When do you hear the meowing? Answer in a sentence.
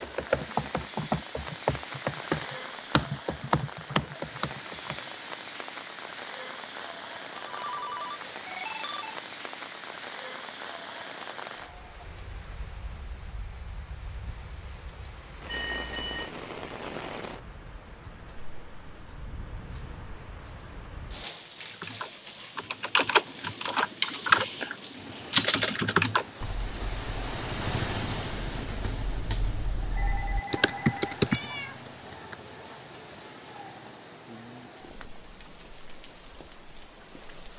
You can hear the meowing from 31.3 to 31.9 s.